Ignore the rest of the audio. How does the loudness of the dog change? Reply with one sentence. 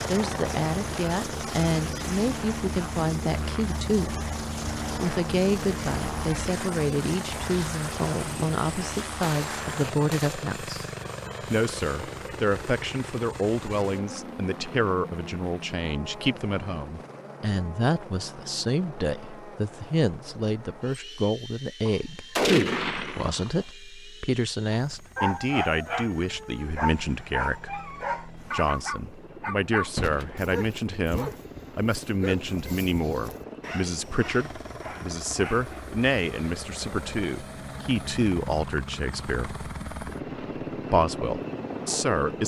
The volume of the dog goes down.